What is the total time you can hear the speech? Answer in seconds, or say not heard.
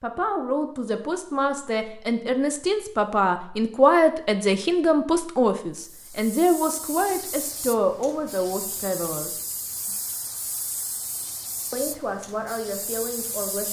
11 s.